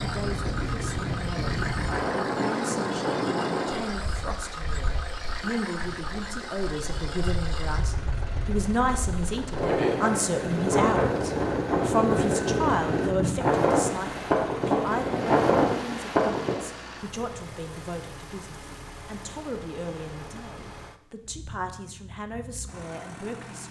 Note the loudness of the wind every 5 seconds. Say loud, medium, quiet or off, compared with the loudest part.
medium, medium, loud, loud, off.